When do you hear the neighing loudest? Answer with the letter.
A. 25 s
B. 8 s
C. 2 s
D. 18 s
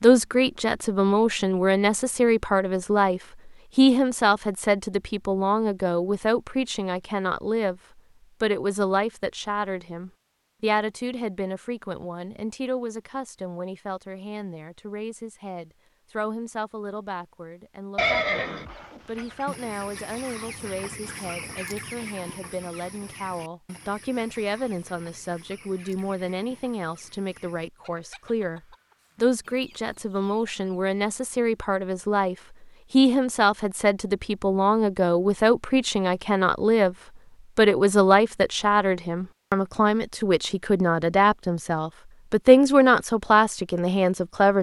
D.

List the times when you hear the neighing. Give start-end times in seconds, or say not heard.
17.9-19.4.